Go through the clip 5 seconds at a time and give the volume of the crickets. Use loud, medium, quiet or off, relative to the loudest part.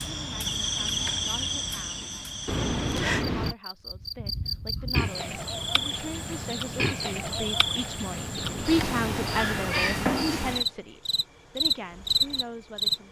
medium, medium, loud.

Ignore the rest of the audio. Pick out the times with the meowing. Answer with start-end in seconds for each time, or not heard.
2.5-3.5, 8.3-10.2.